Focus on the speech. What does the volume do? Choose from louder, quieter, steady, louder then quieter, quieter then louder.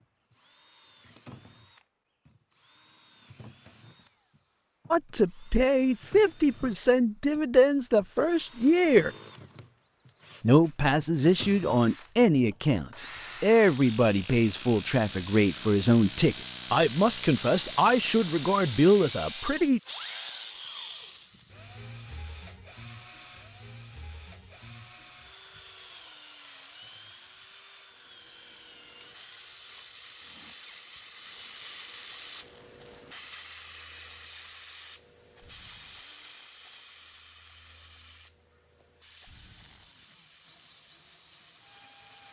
steady.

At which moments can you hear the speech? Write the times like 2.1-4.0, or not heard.
4.9-9.1, 10.4-19.8.